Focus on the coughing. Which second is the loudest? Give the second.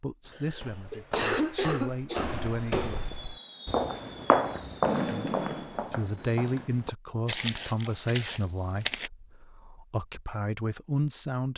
1 s.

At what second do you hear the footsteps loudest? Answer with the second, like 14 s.
4 s.